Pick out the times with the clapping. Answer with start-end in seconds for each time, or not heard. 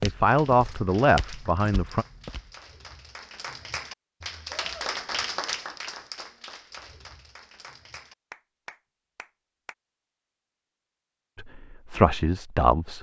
0.2-9.8.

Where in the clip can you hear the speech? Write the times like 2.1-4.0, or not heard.
0.0-2.0, 11.3-12.9.